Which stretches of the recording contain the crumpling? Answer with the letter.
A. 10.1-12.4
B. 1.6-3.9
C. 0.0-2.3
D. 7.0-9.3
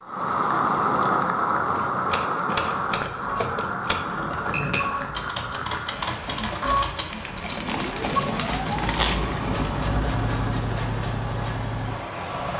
D.